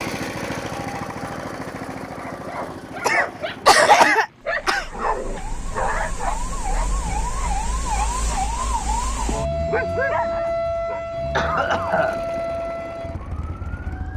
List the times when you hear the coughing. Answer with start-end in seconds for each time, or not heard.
3.0-4.8, 11.3-12.2.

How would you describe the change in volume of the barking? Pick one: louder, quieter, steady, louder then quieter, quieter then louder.
quieter then louder.